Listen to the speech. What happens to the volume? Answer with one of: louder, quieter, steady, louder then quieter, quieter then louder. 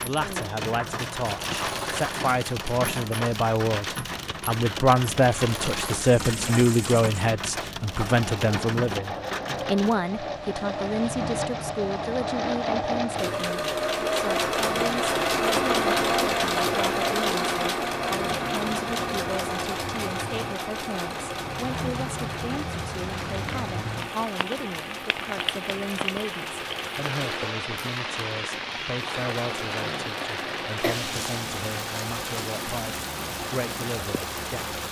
quieter.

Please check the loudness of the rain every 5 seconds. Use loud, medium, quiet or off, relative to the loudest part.
loud, loud, medium, medium, loud, loud, loud.